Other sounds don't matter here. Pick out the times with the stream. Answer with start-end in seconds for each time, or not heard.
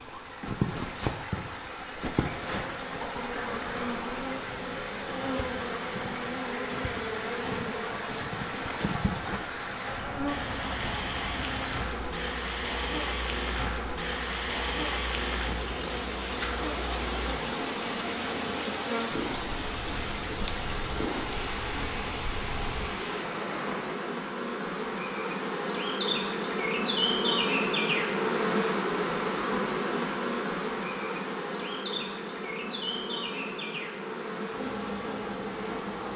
0.0-24.1.